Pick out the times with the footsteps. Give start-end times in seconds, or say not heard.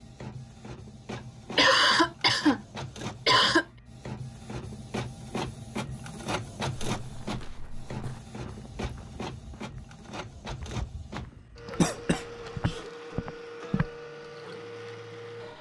6.9-13.9.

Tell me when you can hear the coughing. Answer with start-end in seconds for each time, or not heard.
1.2-3.6, 11.8-12.8.